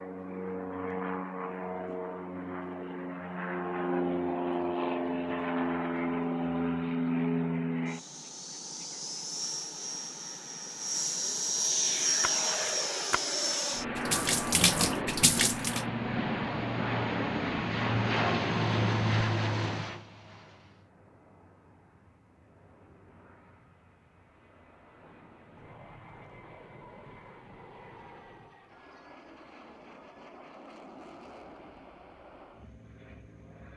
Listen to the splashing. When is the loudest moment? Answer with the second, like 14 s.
15 s.